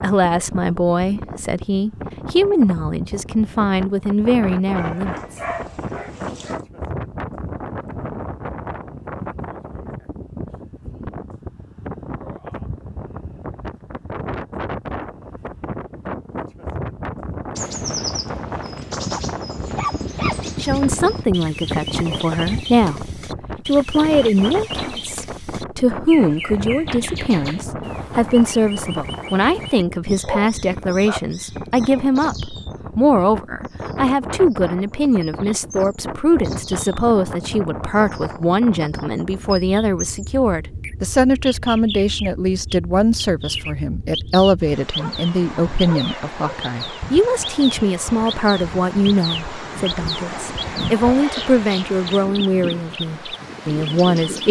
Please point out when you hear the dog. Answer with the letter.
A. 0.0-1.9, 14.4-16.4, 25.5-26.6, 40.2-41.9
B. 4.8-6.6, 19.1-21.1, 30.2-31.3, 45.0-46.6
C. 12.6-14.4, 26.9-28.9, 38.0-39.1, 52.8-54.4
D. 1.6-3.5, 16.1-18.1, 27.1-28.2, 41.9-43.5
B.